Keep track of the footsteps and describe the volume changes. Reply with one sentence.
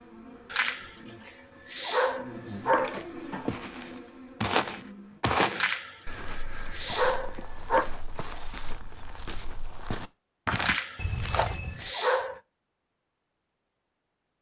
The volume of the footsteps goes down, then up.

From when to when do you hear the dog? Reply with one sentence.
The dog can be heard from 0.5 to 3.0 s, from 5.5 to 7.9 s and from 10.6 to 12.4 s.